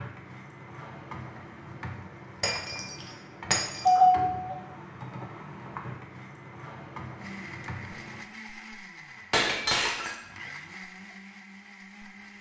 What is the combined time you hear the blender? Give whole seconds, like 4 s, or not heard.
5 s.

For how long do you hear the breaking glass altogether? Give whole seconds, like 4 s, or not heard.
2 s.